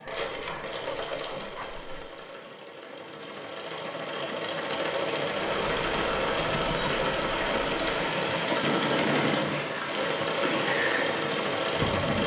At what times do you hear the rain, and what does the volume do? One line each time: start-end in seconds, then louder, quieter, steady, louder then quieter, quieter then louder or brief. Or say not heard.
5.5-12.2 steady.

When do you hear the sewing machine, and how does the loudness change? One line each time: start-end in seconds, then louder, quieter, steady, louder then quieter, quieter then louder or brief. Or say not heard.
0.0-12.2 louder.